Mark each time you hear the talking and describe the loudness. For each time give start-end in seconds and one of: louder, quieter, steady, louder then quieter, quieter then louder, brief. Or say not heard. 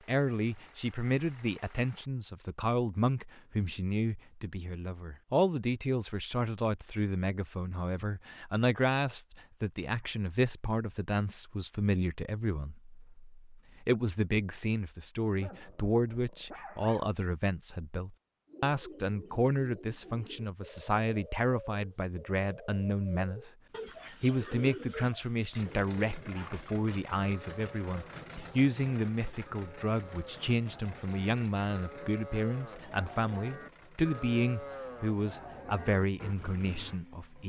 0.1-23.5 steady
24.1-37.4 steady.